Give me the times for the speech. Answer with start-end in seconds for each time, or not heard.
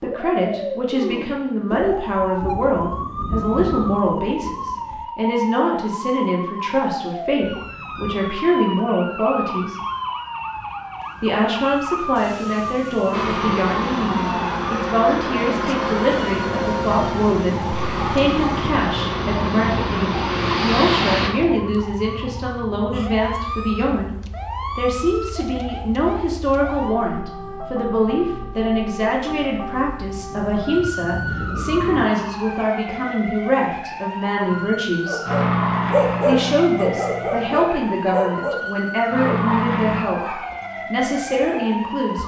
0.0-9.8, 11.2-24.1, 24.8-35.2, 36.2-42.2.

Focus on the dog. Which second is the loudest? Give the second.
36 s.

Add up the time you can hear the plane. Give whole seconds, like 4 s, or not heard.
14 s.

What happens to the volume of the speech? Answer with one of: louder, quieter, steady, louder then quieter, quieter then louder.
steady.